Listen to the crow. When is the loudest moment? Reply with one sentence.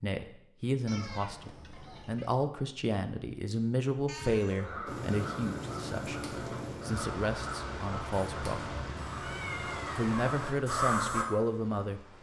The loudest moment of the crow is at 11 seconds.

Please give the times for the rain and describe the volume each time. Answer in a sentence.
You can hear the rain from 4.8 to 12.1 s, getting quieter.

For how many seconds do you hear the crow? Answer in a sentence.
You can hear the crow for 7 seconds altogether.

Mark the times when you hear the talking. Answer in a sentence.
You can hear the talking from 0.0 to 6.2 s, from 6.8 to 8.8 s and from 9.9 to 12.1 s.